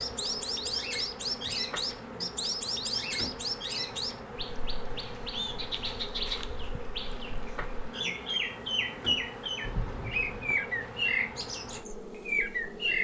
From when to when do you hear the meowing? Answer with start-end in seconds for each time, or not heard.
9.6-10.6.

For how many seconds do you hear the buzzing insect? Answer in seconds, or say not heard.
13 s.